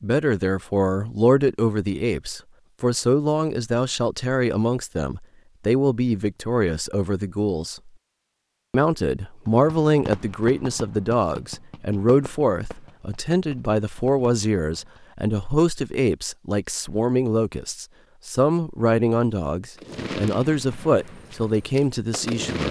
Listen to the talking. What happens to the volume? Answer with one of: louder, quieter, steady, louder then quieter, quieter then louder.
steady.